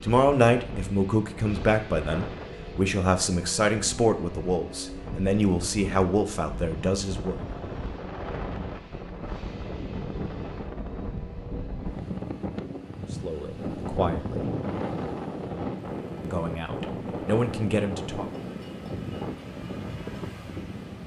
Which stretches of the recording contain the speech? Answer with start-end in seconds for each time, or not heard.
0.0-7.3, 13.2-14.5, 16.2-18.2.